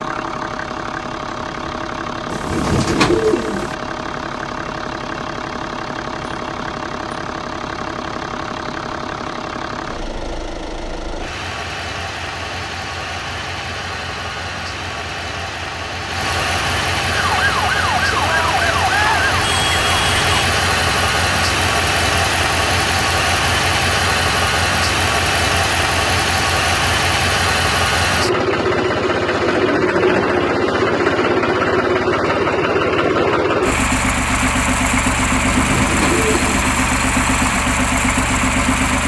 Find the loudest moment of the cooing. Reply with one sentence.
The volume of the cooing peaks at 3 seconds.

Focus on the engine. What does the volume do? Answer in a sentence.
The volume of the engine goes up.